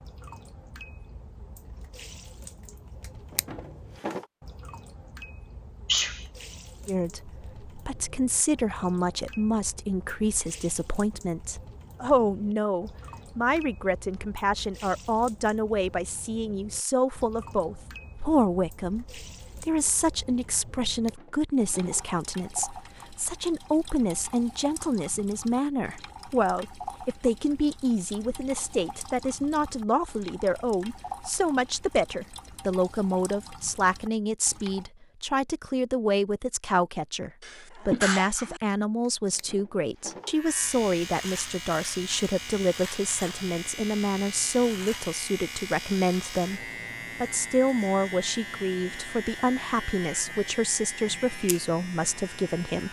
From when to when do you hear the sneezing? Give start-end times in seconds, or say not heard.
5.8-6.2, 37.4-38.6.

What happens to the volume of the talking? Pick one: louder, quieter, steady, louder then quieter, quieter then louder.
steady.